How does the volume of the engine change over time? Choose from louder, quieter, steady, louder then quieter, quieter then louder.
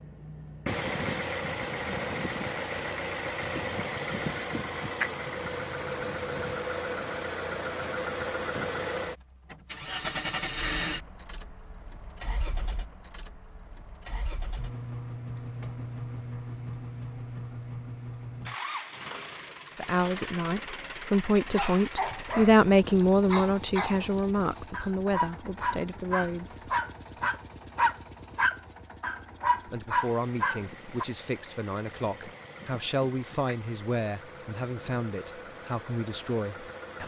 quieter.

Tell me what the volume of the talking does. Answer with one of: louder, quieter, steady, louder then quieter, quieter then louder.
quieter.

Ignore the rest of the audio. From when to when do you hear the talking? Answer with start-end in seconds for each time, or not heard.
19.8-27.3, 29.6-37.0.